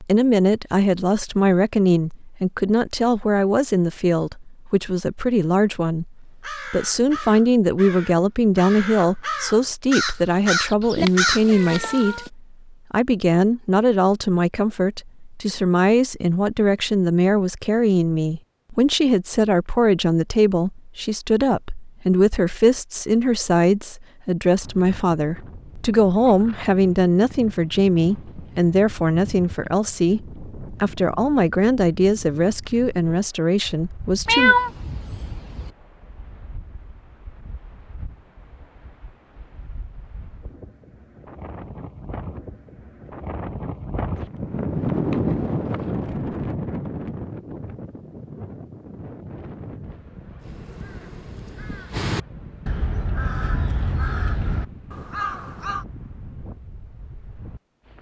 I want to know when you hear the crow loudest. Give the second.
11 s.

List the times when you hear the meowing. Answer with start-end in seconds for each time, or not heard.
11.1-12.3, 34.2-35.7.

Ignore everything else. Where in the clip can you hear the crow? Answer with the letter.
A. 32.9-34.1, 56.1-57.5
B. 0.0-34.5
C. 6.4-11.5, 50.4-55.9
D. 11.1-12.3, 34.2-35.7
C.